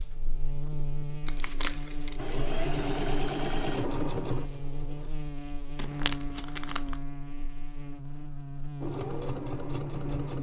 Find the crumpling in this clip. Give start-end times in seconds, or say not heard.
1.2-2.2, 5.8-7.0.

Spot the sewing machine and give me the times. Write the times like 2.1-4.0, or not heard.
2.1-5.1, 8.8-10.3.